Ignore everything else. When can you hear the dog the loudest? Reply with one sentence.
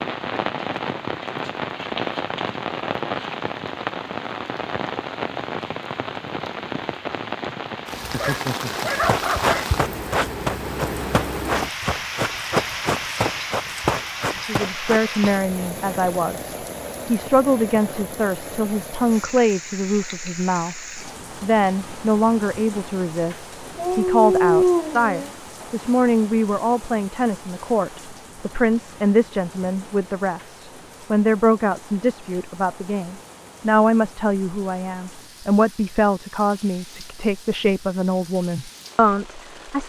The volume of the dog peaks at 25 seconds.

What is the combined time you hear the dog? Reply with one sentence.
You can hear the dog for 3 seconds altogether.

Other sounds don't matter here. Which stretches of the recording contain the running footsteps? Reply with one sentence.
You can hear the running footsteps from 8.7 to 15.3 s.